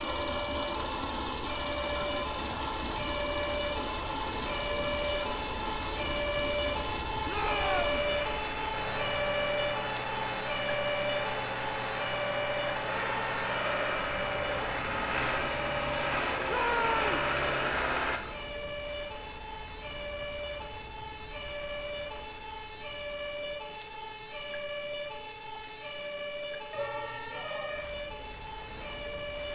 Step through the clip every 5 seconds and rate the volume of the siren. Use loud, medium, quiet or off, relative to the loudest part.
loud, loud, loud, medium, medium, medium.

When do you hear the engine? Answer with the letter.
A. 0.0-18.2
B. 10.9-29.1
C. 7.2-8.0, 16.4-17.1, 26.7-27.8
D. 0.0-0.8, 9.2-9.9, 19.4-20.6
A.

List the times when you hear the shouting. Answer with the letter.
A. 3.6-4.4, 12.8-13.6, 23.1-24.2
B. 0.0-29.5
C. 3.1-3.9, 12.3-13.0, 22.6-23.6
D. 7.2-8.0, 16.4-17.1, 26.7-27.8
D.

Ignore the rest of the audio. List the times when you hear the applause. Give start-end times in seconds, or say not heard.
not heard.